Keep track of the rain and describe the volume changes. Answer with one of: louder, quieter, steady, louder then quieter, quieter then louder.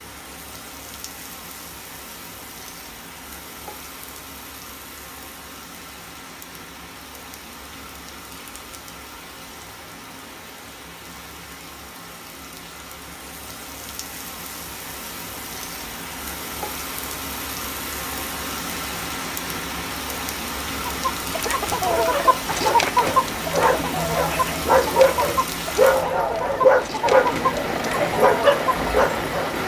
louder.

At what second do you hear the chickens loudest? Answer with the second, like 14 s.
23 s.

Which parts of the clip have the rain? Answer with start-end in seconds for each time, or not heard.
0.0-29.6.